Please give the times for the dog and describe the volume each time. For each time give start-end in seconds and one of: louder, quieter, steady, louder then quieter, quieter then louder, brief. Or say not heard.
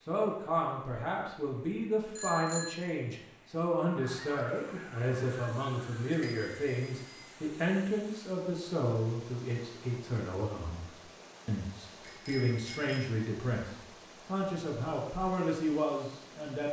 not heard.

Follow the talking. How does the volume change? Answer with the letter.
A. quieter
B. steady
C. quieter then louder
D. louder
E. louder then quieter
B.